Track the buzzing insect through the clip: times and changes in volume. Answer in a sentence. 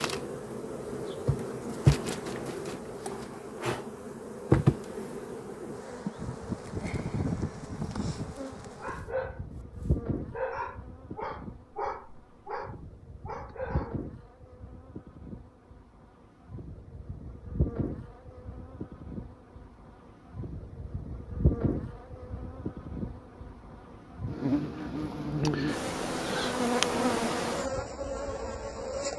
The buzzing insect can be heard from 0.0 to 29.1 s, getting quieter then louder.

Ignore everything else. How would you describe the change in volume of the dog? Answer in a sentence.
The volume of the dog goes down.